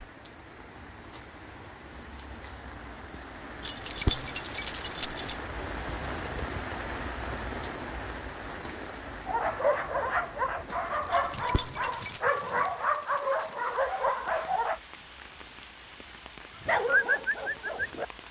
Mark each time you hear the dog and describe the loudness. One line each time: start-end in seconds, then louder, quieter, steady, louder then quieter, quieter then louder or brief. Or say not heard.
9.2-14.8 steady
16.6-18.2 brief.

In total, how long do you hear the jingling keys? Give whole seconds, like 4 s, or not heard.
3 s.